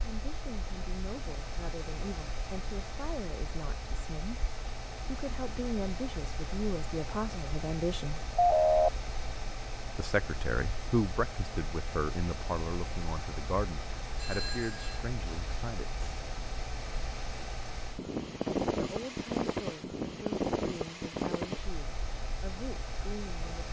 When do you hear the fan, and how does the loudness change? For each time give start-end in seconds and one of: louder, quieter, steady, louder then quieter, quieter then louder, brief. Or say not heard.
0.0-23.6 louder.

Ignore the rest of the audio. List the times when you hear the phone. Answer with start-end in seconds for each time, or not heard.
8.3-8.9, 14.2-15.1.